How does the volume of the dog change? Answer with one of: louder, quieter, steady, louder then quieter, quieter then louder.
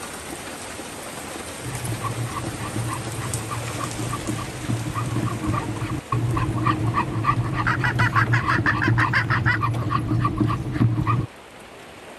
louder.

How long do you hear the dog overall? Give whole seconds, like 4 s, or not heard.
10 s.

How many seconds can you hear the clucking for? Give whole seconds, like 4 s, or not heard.
2 s.